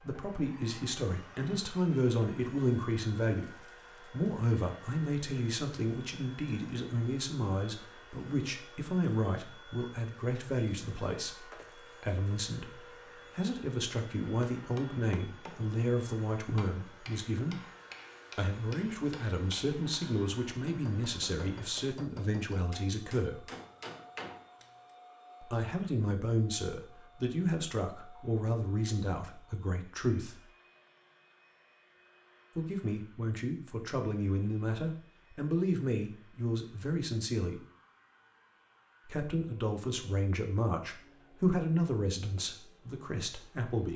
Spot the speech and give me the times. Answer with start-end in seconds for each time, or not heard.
0.0-17.6, 18.4-23.4, 25.4-30.4, 32.5-37.6, 39.0-43.9.